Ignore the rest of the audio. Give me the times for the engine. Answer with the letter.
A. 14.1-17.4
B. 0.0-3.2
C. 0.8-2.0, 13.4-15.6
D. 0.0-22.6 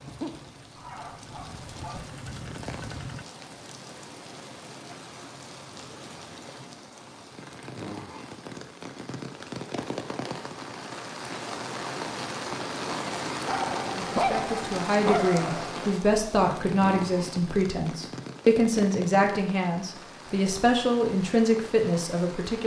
B.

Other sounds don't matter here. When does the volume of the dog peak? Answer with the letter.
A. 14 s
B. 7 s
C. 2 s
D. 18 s
A.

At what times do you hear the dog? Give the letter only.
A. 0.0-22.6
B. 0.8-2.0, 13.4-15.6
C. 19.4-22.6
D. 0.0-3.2
B.